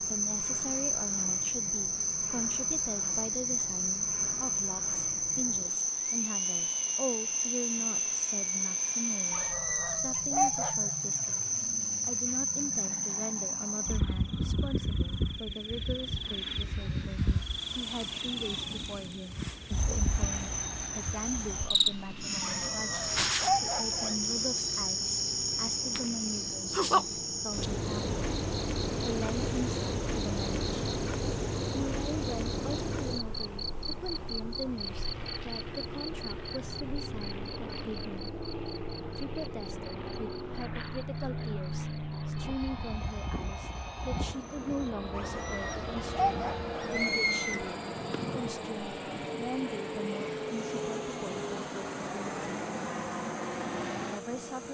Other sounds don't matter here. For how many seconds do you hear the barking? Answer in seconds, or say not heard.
6 s.